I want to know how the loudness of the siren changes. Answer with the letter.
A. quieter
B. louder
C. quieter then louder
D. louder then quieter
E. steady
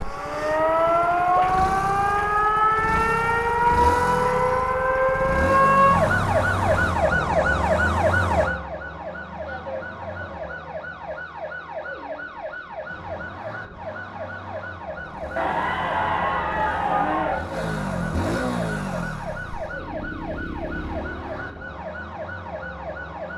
A.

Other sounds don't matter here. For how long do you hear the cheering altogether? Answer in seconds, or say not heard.
2 s.